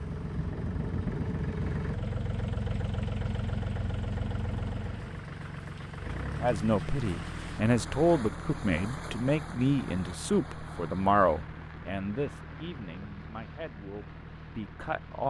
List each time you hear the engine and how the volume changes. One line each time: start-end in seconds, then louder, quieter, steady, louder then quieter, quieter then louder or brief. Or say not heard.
0.0-15.2 quieter.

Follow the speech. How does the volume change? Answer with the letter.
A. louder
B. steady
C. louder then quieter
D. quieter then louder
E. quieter
E.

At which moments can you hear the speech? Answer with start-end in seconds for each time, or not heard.
6.4-15.2.